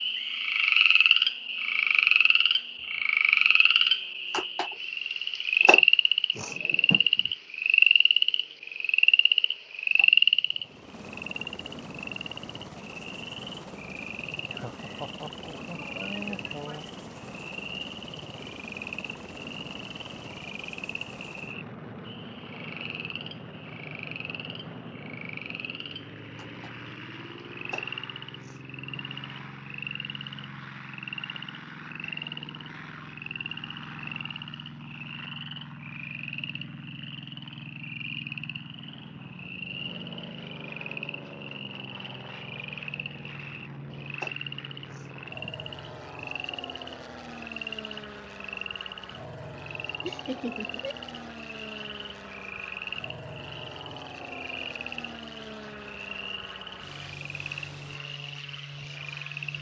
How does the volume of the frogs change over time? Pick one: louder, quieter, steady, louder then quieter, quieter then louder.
quieter.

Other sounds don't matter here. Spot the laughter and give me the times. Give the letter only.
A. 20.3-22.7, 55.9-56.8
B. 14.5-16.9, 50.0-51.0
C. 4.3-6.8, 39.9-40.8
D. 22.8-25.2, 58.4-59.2
B.